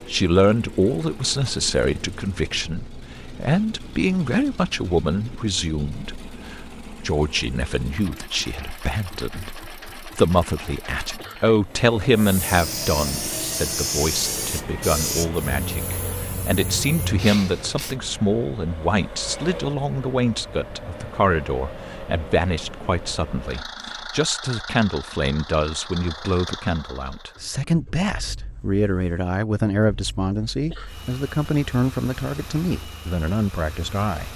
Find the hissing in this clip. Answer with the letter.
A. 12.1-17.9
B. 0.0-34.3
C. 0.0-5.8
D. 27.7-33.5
A.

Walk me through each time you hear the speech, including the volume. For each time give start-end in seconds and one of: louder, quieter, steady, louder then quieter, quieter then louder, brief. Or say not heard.
0.0-34.3 steady.